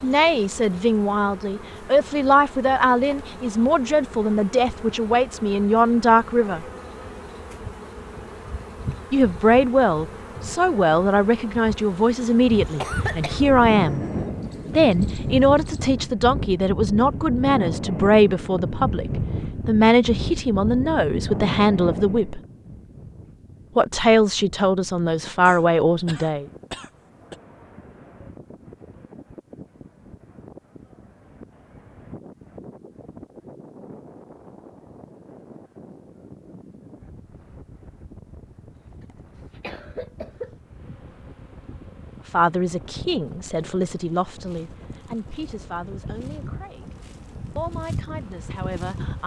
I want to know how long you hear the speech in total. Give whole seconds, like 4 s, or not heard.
28 s.